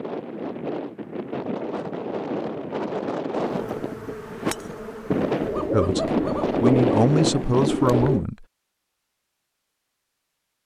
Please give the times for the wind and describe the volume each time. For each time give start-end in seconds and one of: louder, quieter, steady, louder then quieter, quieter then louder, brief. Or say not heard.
0.0-8.1 louder.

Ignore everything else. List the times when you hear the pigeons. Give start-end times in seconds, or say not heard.
5.4-8.2.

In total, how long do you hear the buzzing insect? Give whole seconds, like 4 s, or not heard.
2 s.